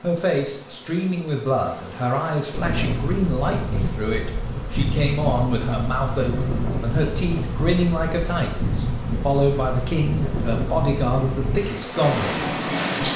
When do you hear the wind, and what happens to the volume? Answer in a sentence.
The wind can be heard from 2.5 to 13.1 s, at a steady volume.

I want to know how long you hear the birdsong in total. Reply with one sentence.
The birdsong can't be heard in this clip.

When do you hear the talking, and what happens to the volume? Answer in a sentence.
You can hear the talking from 0.0 to 13.1 s, at a steady volume.